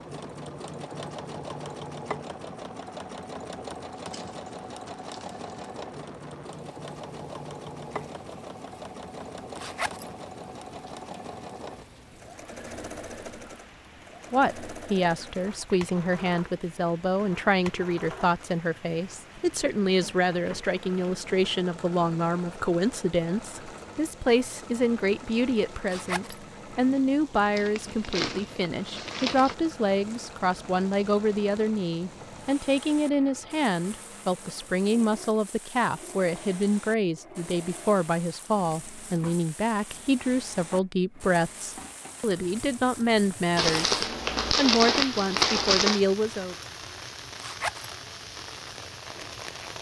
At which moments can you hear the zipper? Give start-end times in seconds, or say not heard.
9.6-10.1, 25.9-26.4, 47.4-47.9.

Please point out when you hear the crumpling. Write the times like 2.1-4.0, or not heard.
4.0-5.5, 27.6-29.6, 43.5-46.0.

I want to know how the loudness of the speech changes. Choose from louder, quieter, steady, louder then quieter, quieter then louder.
steady.